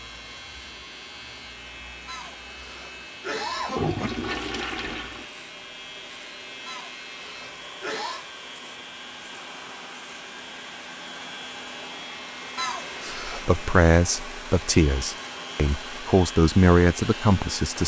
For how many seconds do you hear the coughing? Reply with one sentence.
You can hear the coughing for 5 seconds altogether.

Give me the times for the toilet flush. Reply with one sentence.
The toilet flush can be heard from 3.8 to 5.2 s.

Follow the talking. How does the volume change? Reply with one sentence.
The loudness of the talking goes down, then up.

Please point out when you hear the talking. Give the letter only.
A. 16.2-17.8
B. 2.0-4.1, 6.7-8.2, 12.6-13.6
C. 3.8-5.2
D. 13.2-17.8
D.